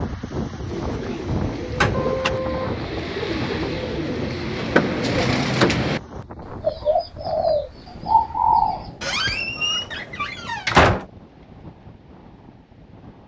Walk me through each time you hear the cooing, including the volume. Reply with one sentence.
You can hear the cooing from 0.7 to 8.9 s, getting louder.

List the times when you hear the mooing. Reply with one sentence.
The mooing can be heard from 1.9 to 2.8 s.